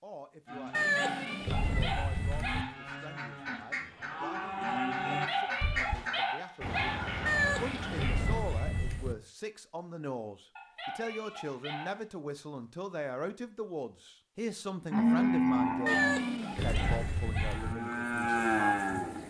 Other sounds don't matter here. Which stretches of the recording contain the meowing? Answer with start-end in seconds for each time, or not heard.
0.7-2.6, 7.2-9.2, 15.8-17.8.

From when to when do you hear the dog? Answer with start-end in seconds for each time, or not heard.
0.7-2.8, 5.1-7.0, 10.6-12.1, 15.7-17.6.